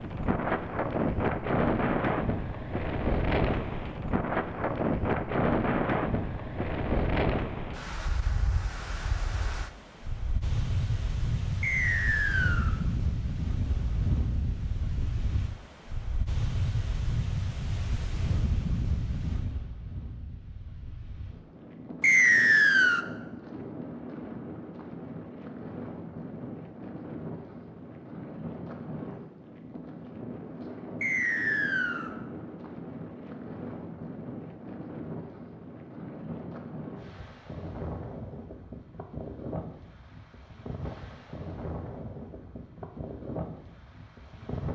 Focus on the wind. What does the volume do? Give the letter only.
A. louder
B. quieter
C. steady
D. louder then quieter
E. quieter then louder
B.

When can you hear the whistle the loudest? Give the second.
22 s.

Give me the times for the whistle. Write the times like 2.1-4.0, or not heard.
11.6-12.8, 22.0-23.1, 31.0-32.1.